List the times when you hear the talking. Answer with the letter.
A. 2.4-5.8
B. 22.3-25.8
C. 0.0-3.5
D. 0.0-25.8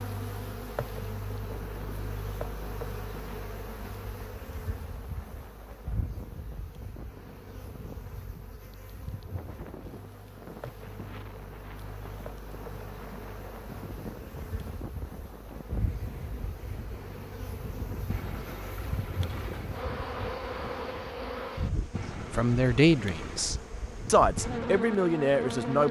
B.